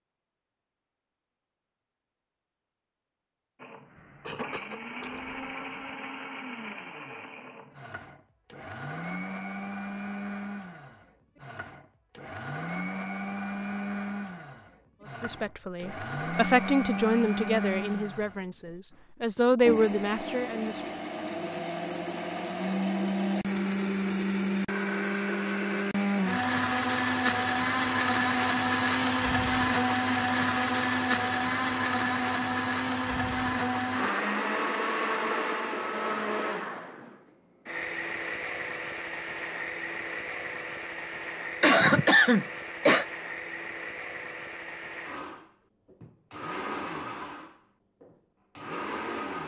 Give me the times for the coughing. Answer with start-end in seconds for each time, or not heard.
4.0-5.8, 41.6-43.0.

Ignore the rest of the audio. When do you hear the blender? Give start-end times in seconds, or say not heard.
3.6-18.4, 19.4-49.4.